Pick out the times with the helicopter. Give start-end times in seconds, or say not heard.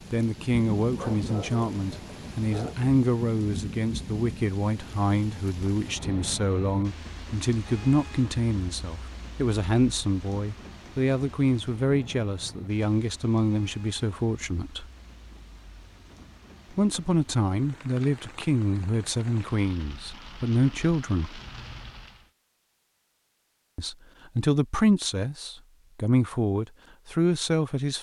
not heard.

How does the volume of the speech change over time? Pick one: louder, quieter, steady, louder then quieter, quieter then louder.
steady.